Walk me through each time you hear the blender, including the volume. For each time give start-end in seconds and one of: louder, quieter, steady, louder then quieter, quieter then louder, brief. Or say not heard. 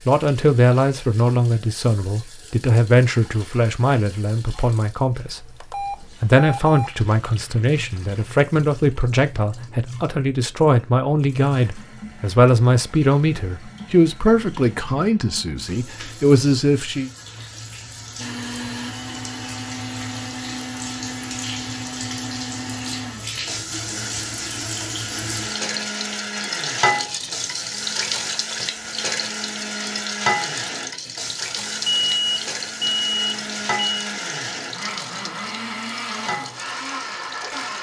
18.1-37.7 steady.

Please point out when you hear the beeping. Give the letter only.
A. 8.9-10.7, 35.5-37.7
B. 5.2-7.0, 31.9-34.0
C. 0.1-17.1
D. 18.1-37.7
B.